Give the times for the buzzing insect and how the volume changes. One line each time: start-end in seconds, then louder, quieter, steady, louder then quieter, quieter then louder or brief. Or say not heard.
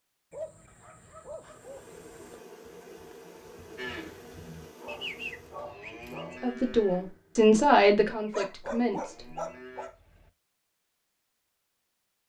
1.4-5.8 steady.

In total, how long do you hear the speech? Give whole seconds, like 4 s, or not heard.
3 s.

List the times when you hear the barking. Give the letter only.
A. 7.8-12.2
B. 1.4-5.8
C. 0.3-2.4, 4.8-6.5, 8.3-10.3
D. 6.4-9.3
C.